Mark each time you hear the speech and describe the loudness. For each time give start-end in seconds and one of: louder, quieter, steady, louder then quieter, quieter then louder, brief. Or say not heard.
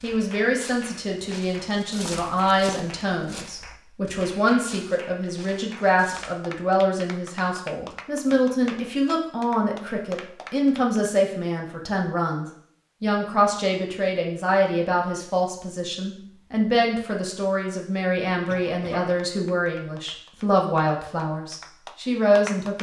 0.0-22.7 steady.